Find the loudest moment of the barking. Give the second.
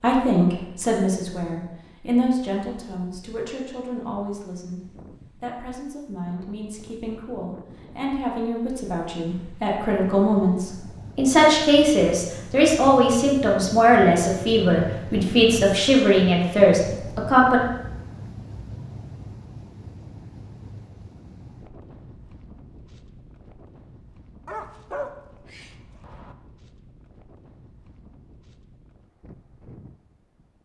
25 s.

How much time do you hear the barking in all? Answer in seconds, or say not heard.
2 s.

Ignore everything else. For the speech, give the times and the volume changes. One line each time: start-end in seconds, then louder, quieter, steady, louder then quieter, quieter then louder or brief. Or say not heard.
0.0-17.6 quieter then louder.